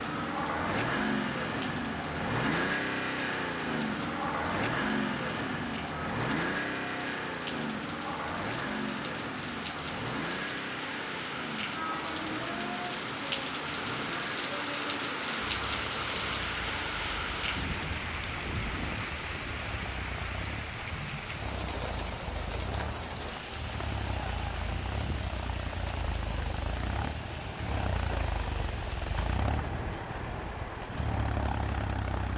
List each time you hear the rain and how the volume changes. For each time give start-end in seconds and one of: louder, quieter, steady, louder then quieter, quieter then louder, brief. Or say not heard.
0.0-32.3 louder then quieter.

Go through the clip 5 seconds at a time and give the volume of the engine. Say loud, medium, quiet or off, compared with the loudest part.
loud, loud, medium, quiet, medium, medium, medium.